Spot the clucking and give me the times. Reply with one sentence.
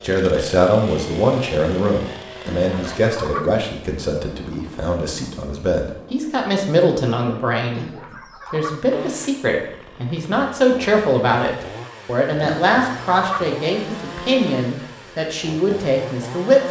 The clucking can be heard from 2.5 to 3.5 s, from 7.8 to 8.8 s and from 12.4 to 13.4 s.